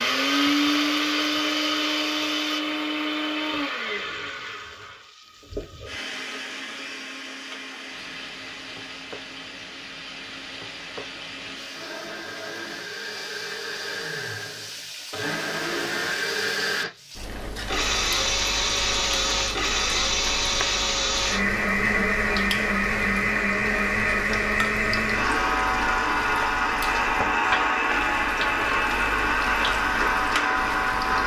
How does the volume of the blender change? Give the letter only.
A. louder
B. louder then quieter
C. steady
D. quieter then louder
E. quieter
D.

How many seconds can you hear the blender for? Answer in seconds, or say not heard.
31 s.